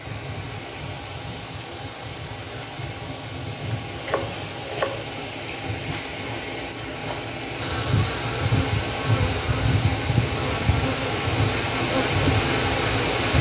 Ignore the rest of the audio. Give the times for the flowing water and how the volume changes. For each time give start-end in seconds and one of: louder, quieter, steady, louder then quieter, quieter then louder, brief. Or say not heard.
0.0-13.3 louder.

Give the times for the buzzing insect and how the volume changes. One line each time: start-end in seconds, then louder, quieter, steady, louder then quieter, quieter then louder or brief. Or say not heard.
0.0-13.3 louder.